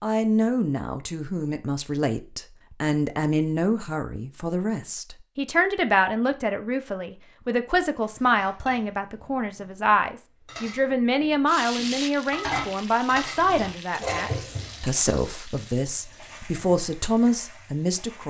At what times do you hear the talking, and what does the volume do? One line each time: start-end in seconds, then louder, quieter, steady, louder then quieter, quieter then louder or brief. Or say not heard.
0.0-18.2 steady.